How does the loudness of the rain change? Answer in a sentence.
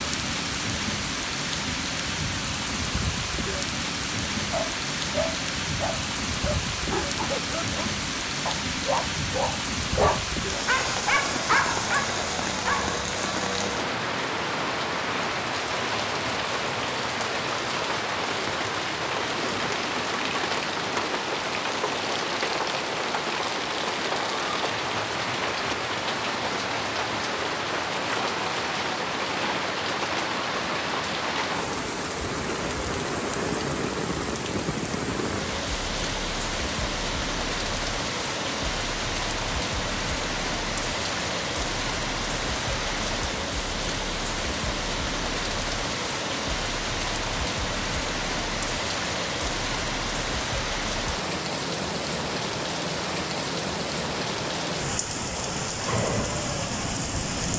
The loudness of the rain stays about the same.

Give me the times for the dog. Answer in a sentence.
The dog can be heard from 4.5 to 12.9 s.